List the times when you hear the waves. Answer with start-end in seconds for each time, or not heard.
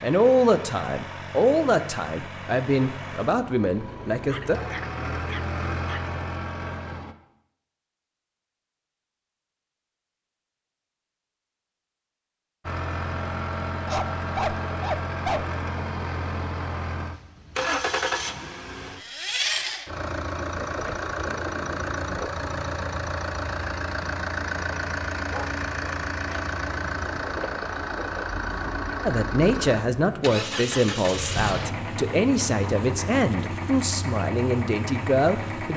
not heard.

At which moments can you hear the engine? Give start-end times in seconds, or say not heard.
0.0-7.2, 12.7-35.7.